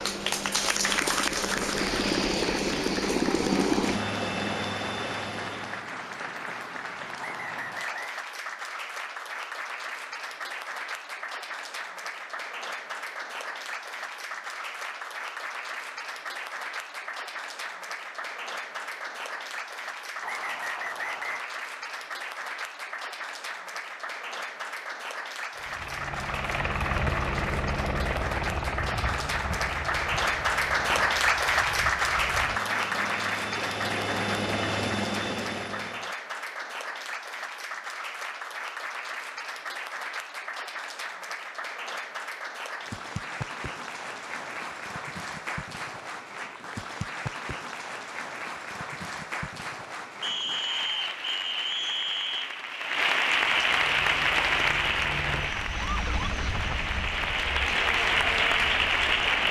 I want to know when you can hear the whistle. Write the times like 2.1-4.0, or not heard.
7.2-8.2, 20.2-21.4, 50.2-52.5.